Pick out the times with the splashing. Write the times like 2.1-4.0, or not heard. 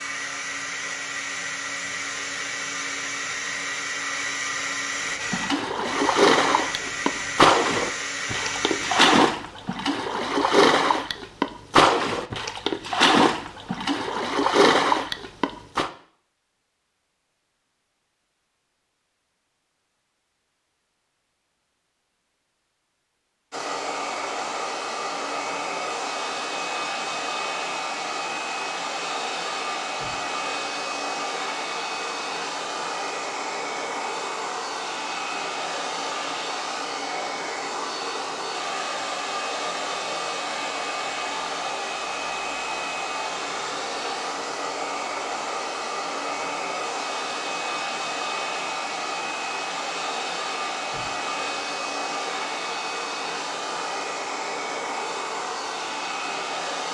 5.2-15.9.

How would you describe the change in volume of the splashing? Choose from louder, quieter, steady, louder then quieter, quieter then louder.
steady.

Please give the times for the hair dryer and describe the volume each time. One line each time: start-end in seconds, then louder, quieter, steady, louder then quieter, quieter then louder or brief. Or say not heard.
0.0-9.2 steady
23.5-56.8 steady.